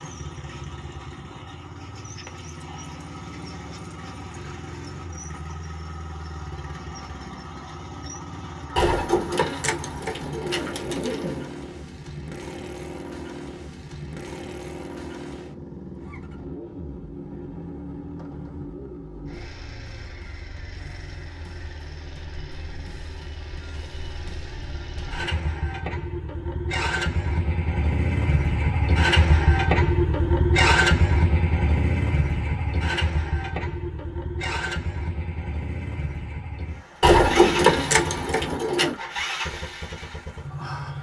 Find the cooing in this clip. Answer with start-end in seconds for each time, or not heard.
8.8-11.5, 37.0-39.0.